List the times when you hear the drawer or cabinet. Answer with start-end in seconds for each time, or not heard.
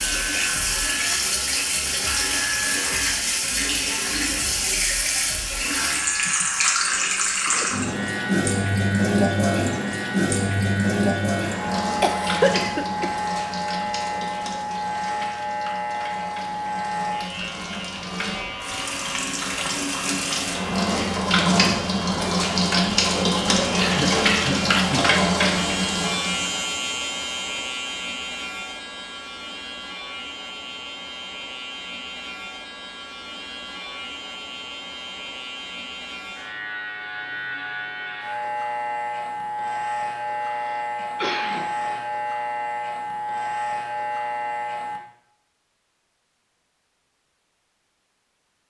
not heard.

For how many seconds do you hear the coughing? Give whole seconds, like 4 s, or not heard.
4 s.